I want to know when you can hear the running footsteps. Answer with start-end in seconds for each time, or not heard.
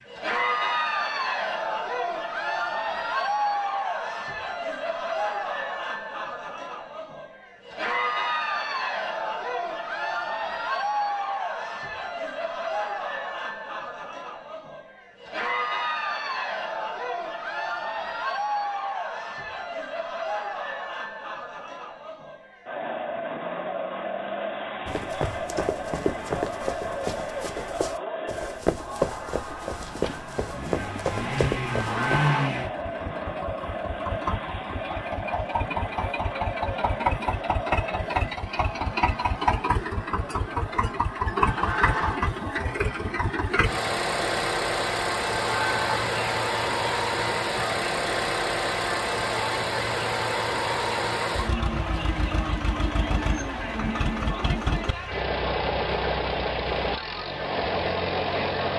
24.9-32.3.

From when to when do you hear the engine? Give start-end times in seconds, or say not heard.
29.4-58.7.